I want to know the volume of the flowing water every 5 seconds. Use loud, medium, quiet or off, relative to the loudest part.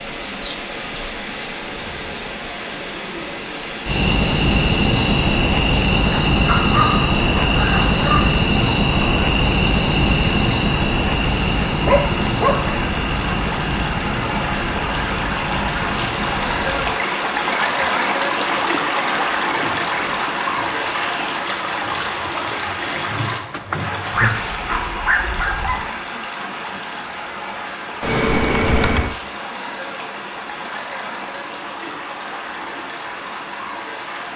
medium, medium, medium, loud, loud, medium, medium.